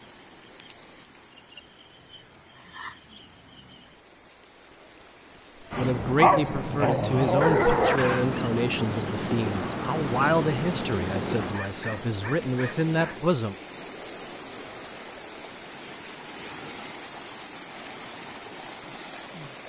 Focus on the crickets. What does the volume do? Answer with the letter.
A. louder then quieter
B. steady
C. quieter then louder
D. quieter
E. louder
D.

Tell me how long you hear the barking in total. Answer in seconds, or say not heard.
4 s.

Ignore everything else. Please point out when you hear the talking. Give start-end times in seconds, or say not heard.
5.7-13.6.